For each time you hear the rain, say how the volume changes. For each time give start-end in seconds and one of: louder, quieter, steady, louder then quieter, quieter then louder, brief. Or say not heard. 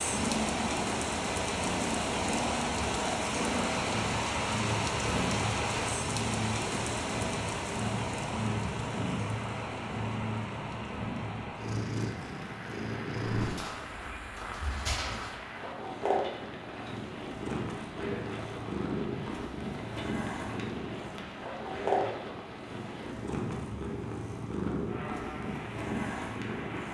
0.0-26.8 quieter.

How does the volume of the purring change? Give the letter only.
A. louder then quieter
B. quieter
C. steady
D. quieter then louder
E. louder
C.